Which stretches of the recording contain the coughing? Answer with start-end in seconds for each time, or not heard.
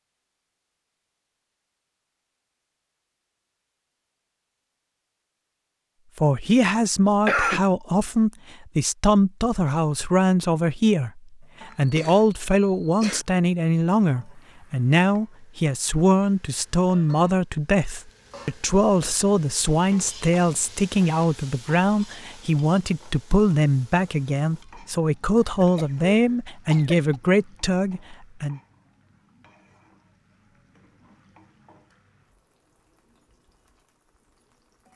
7.2-7.7, 11.7-13.2, 25.4-27.2.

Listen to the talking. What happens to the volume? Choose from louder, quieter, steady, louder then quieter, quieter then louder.
steady.